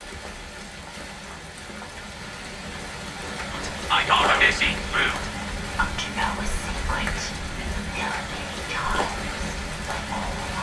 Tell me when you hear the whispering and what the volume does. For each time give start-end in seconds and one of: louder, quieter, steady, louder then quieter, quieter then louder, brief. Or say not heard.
3.5-10.5 quieter.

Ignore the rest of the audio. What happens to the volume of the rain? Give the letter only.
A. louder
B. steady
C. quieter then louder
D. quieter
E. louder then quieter
A.